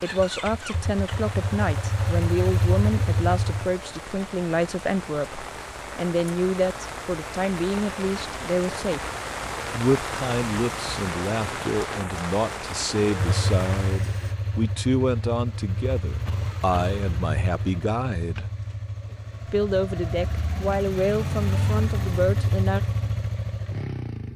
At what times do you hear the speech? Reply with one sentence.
The speech can be heard from 0.0 to 9.0 s, from 9.7 to 18.4 s and from 19.5 to 22.8 s.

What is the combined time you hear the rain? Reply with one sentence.
The rain can be heard for 14 seconds in total.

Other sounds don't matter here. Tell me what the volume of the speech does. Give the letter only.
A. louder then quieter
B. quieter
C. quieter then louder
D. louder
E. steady
E.